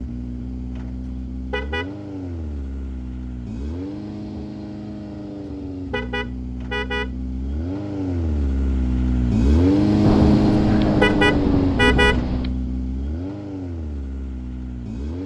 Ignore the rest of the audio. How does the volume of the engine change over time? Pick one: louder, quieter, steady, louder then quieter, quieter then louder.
louder then quieter.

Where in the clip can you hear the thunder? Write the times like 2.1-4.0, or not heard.
10.0-12.6.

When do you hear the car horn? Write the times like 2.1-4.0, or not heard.
1.4-1.9, 5.8-7.1, 10.9-12.2.